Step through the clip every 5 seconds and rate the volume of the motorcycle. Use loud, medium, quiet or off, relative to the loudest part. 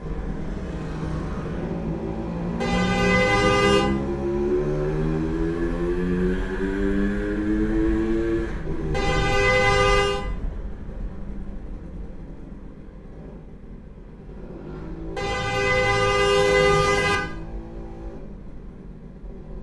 loud, loud, quiet, quiet.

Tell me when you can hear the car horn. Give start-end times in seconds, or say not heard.
2.6-3.9, 8.9-10.2, 15.2-17.2.